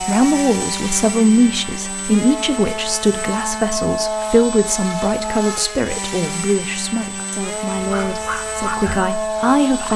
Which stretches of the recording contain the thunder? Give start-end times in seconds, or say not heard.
not heard.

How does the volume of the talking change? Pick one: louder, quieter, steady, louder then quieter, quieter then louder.
quieter.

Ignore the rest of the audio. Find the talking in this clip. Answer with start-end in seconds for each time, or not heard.
0.0-9.9.